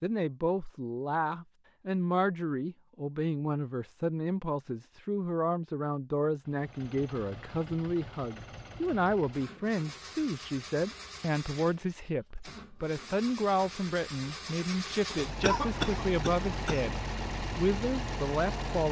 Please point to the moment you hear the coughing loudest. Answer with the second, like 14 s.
16 s.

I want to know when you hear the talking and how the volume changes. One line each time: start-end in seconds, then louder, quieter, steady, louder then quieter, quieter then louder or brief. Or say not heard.
0.0-18.8 steady.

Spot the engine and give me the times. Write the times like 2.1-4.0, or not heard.
6.4-18.8.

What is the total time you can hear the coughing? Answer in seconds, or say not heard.
2 s.